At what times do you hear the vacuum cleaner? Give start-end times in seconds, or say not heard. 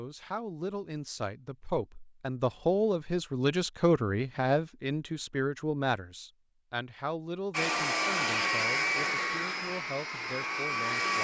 7.5-11.2.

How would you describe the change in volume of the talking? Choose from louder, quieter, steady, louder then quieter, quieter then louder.
louder then quieter.